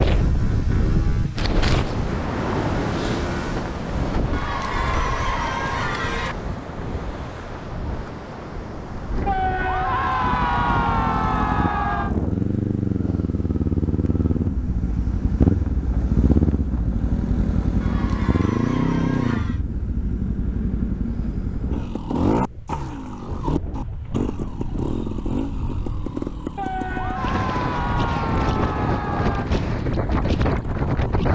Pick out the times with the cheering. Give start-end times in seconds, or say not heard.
4.3-6.3, 9.2-12.2, 17.8-19.6, 26.6-29.5.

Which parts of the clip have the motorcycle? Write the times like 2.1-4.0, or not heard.
0.0-4.2, 10.1-31.3.